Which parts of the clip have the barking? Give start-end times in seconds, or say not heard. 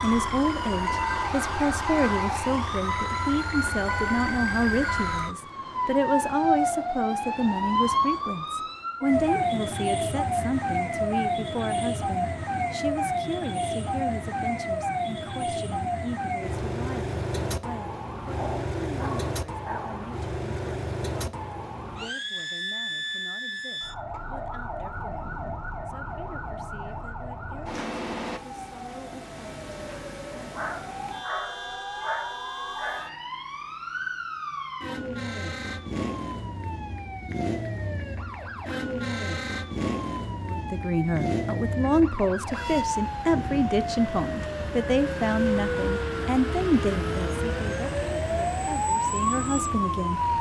18.3-20.1, 30.6-33.1.